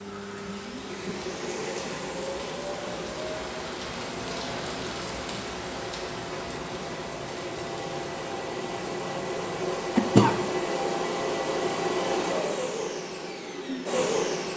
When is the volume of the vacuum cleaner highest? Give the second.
12 s.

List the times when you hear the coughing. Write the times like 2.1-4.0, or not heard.
9.9-10.4.